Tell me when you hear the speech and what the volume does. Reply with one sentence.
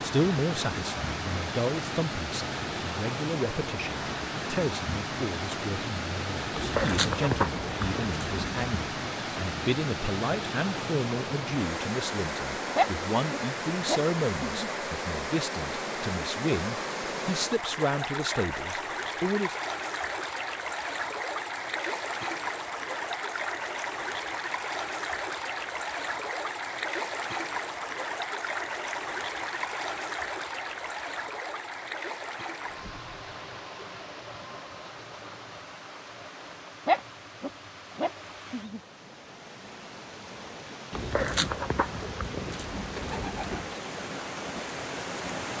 The speech can be heard from 0.0 to 19.6 s, at a steady volume.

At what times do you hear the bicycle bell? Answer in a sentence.
The bicycle bell can't be heard in this clip.